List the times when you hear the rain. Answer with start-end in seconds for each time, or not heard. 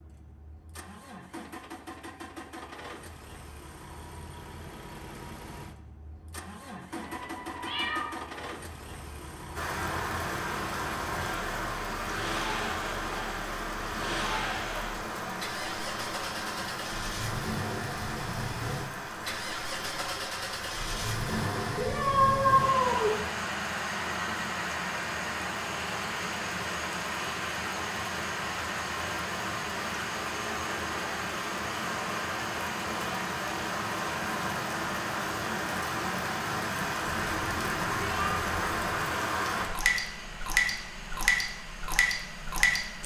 9.6-43.0.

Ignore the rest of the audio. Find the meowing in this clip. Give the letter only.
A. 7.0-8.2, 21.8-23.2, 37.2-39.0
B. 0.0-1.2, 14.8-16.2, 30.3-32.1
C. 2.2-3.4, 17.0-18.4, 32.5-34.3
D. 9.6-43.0
A.